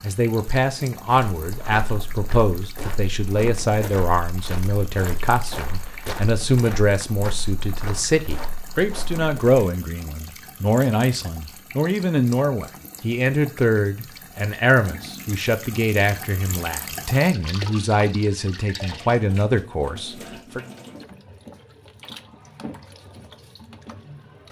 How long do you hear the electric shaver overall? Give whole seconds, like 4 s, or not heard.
not heard.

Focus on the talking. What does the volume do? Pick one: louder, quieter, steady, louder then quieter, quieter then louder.
steady.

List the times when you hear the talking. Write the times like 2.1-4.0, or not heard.
0.0-20.6.